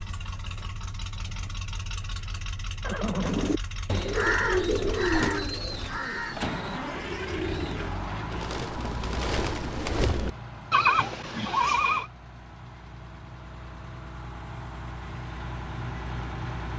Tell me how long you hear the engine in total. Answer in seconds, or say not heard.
17 s.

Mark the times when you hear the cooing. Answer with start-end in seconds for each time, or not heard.
3.2-10.3.